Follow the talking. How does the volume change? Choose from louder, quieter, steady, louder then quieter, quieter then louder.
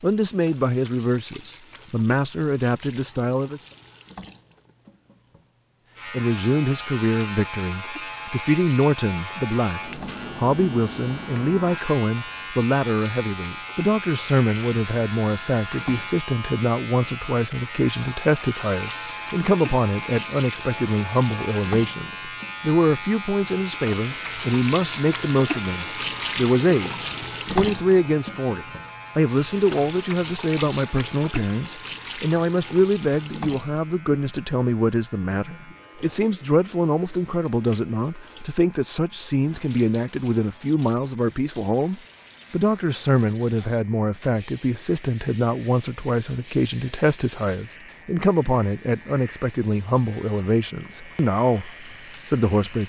steady.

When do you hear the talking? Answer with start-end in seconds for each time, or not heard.
0.0-3.6, 6.1-52.8.